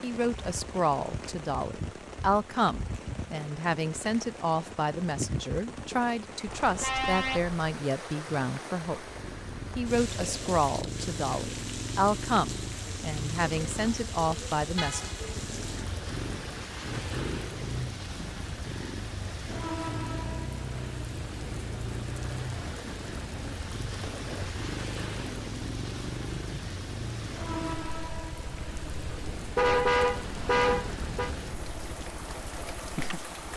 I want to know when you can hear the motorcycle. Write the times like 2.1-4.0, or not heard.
8.8-33.5.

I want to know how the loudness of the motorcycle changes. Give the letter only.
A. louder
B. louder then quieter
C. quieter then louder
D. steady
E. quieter
D.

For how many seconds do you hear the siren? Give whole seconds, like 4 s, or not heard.
not heard.